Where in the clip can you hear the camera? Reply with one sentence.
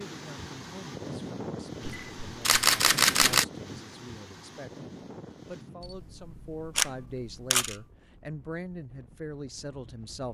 The camera can be heard from 1.9 to 3.5 s and from 5.8 to 7.8 s.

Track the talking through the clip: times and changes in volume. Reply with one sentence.
The talking can be heard from 0.0 to 10.2 s, getting louder.